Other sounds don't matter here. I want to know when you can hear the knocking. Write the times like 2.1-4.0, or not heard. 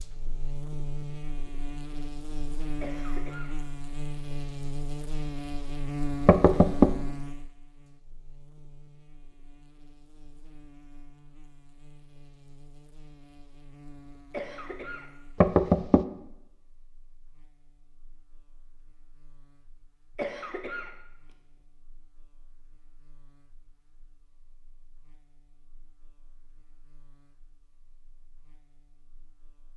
6.2-6.9, 15.4-16.1.